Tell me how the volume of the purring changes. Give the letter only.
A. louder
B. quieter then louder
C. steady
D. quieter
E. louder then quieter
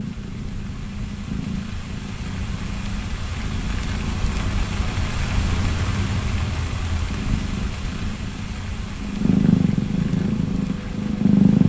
A.